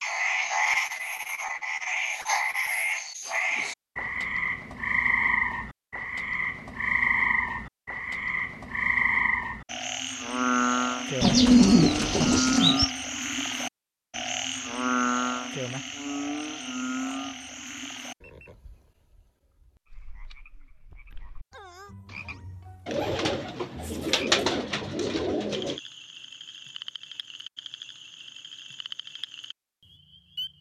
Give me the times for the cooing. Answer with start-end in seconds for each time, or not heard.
11.2-12.9, 22.9-25.8.